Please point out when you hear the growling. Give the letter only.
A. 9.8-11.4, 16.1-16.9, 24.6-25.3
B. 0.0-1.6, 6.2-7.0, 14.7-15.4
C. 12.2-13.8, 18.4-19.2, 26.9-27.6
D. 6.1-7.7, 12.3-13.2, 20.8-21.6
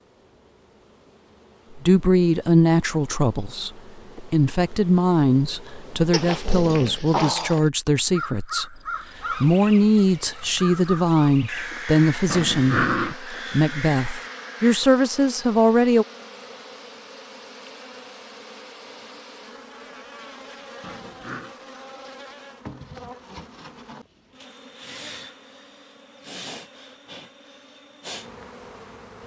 D.